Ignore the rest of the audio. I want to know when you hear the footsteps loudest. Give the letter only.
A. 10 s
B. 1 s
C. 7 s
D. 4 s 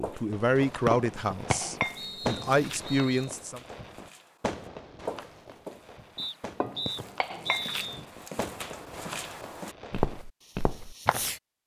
A.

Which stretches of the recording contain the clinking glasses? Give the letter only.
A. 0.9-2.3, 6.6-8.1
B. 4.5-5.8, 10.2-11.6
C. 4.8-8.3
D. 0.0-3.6
A.